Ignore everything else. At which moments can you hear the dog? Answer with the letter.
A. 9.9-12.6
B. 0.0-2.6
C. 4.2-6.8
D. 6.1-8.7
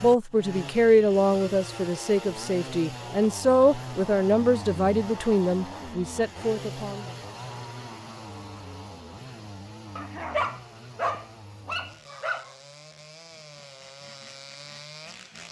A.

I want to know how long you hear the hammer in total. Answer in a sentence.
You can't hear the hammer here.